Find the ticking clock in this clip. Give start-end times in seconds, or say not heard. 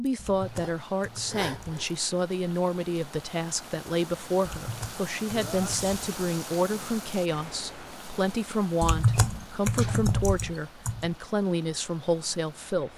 not heard.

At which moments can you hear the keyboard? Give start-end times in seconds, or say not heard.
0.1-1.9, 4.4-6.0, 8.8-11.1.